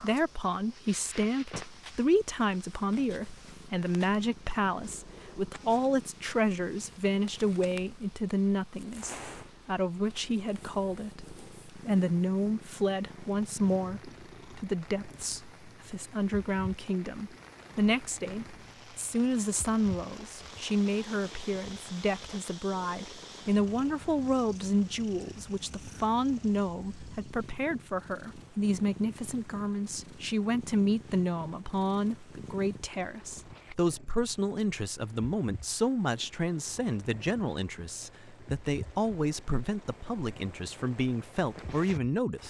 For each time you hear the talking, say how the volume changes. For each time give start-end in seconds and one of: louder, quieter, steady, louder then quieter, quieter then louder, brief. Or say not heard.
0.0-42.4 steady.